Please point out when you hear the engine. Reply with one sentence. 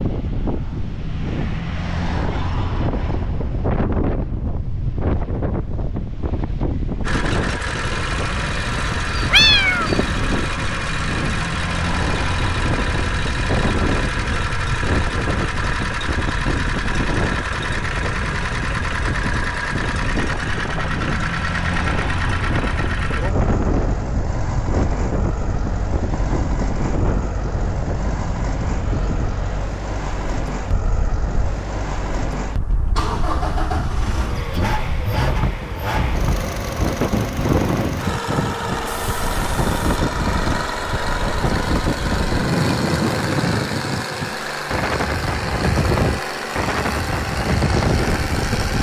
The engine can be heard from 7.0 to 48.7 s.